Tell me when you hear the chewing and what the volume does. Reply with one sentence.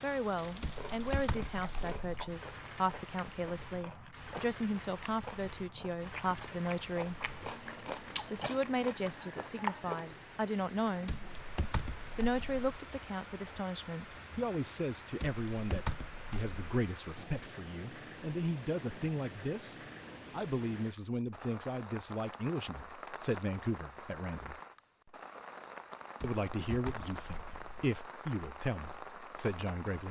The chewing can be heard from 0.8 to 10.1 s, getting louder.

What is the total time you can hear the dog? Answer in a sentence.
You can't hear the dog here.